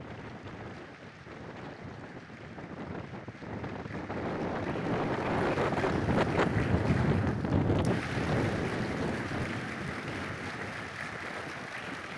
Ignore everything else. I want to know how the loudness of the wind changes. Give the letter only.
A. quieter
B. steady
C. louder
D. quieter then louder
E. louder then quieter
E.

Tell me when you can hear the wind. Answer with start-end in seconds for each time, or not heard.
0.0-12.1.